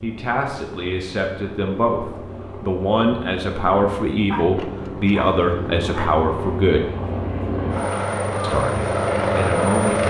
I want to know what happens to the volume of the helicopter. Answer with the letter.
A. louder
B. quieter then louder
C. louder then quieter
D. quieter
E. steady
A.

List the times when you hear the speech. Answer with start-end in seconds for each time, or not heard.
0.0-6.9, 8.4-10.0.